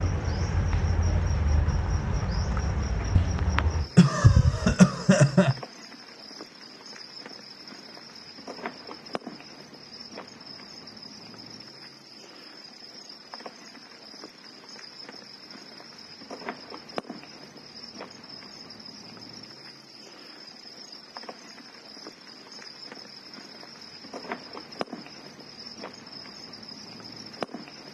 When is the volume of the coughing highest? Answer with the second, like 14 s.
5 s.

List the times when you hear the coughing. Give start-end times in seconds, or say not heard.
3.1-5.5.